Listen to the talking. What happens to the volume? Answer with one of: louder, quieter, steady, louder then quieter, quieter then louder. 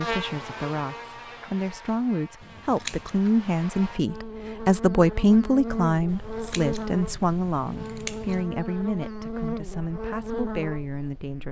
louder then quieter.